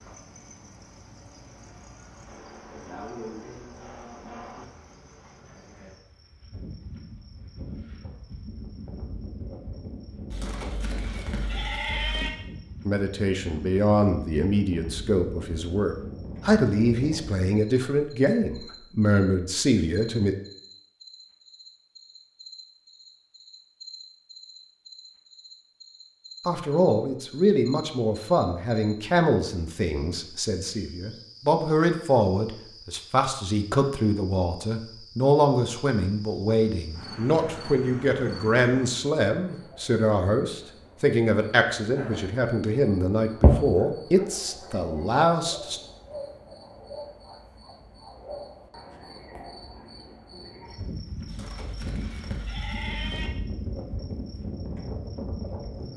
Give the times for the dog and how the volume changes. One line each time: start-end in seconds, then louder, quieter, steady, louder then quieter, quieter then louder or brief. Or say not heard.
not heard.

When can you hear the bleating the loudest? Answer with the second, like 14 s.
12 s.